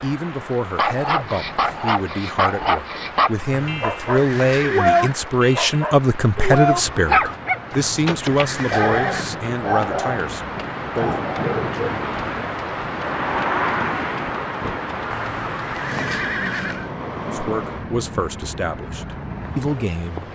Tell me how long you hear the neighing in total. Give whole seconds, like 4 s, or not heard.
5 s.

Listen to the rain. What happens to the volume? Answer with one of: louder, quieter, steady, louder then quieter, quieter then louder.
louder then quieter.